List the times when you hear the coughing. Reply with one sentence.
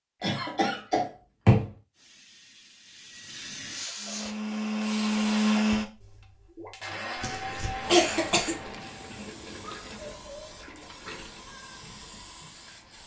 The coughing can be heard from 0.2 to 1.7 s and from 7.2 to 8.6 s.